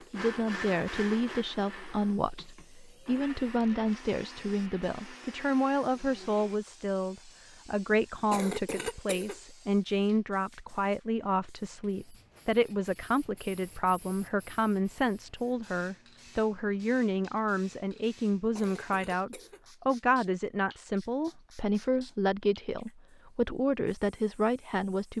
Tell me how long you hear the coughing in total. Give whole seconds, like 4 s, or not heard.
2 s.